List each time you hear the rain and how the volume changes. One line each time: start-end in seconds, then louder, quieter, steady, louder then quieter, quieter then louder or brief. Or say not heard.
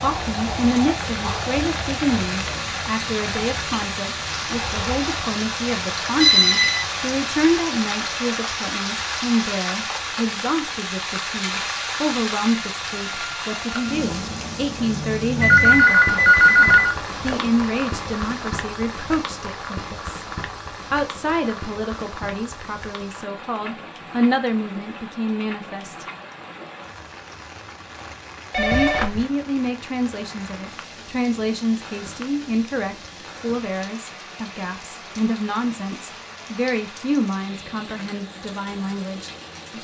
0.0-39.7 quieter.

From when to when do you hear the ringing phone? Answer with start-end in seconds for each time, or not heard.
6.2-6.8, 15.4-17.4, 28.5-29.2.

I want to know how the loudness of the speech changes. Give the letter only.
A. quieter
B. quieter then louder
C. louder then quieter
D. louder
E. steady
E.